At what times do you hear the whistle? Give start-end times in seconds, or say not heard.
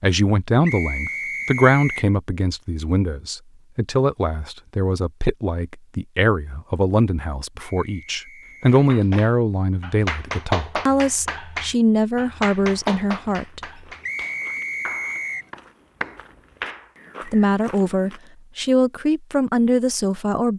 0.7-2.1, 7.5-8.8, 14.0-15.5.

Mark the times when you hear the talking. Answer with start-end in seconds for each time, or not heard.
0.0-13.6, 17.2-20.5.